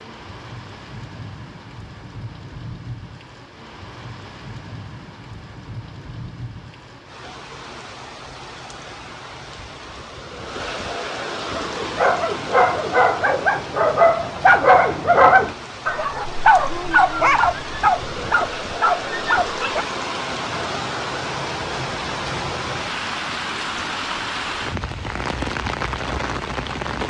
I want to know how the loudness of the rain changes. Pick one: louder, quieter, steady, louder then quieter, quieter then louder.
louder.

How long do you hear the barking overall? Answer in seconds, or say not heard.
8 s.